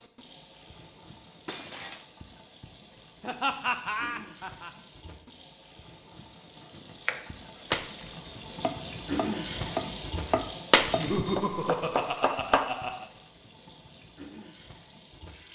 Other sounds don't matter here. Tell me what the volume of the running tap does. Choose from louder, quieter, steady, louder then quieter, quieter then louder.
louder then quieter.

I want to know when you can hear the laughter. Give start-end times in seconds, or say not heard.
3.2-4.7, 10.9-13.1.